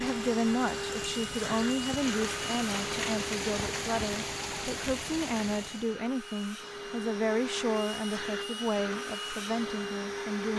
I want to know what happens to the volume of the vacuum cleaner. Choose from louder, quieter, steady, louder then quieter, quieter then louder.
quieter then louder.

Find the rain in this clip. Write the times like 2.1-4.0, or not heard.
0.0-6.0.